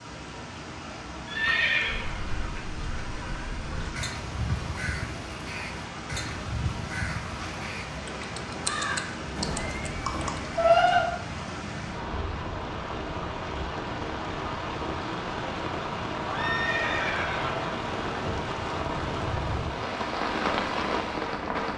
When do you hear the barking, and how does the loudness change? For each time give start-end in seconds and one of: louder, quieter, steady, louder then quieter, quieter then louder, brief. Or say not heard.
not heard.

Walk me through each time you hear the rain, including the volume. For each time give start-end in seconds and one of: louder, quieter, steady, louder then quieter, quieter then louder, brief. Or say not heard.
0.0-21.7 louder.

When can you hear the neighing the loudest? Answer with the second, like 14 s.
11 s.